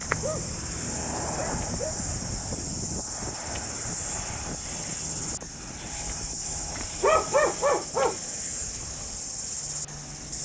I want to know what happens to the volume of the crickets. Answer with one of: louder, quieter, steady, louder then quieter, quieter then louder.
steady.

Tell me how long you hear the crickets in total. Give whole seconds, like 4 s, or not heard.
10 s.